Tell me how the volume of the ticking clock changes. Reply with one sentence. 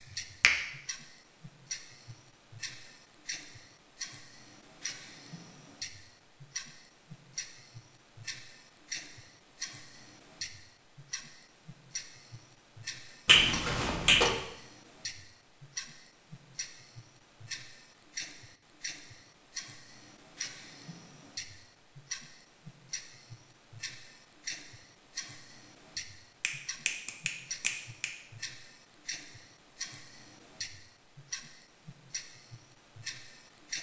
The volume of the ticking clock stays about the same.